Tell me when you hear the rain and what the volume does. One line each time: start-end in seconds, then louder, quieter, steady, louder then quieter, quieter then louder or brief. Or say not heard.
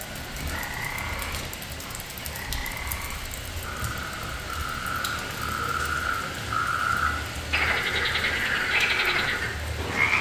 0.0-10.1 steady.